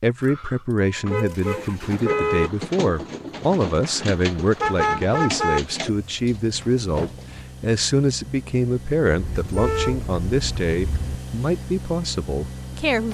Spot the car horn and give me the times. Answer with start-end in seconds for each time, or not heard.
1.1-2.5, 4.6-5.6, 9.2-11.2.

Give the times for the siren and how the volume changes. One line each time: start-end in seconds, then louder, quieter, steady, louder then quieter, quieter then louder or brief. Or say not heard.
not heard.